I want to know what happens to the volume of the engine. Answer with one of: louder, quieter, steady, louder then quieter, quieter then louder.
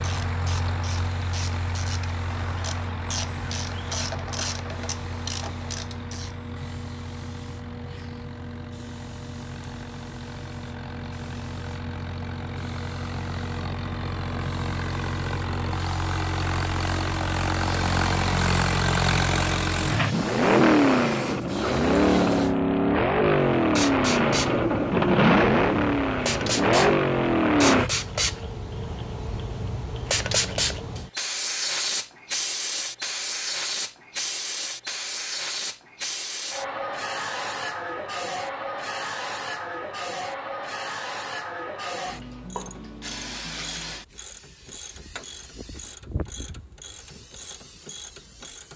quieter then louder.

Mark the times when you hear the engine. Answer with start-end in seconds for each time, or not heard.
0.0-27.9.